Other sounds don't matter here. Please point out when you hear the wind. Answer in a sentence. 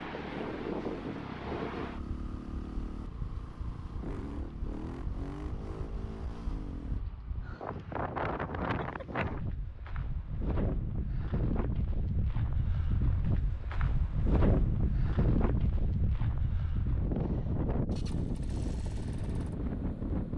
The wind can be heard from 0.0 to 20.3 s.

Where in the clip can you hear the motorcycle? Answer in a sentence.
You can hear the motorcycle from 0.0 to 7.0 s and from 17.9 to 20.3 s.